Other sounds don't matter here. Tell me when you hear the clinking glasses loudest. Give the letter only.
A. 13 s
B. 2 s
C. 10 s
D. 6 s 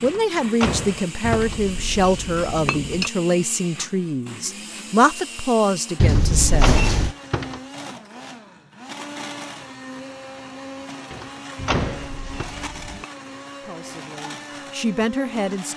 D.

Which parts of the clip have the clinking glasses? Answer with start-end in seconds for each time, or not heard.
1.2-3.1, 6.0-7.2, 11.6-13.1.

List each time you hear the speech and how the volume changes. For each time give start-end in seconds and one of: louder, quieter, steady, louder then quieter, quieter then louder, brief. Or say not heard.
0.0-6.9 steady
13.6-15.7 brief.